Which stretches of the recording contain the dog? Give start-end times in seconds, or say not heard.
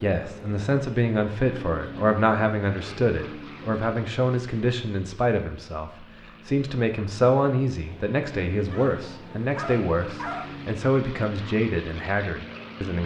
8.7-10.6.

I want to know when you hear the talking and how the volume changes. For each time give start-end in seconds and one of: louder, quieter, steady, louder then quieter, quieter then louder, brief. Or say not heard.
0.0-13.0 steady.